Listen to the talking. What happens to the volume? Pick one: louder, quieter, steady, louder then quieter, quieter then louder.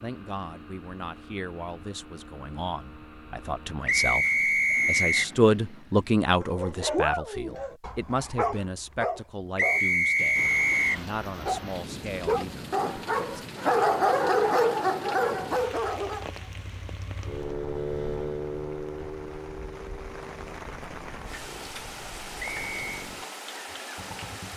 louder then quieter.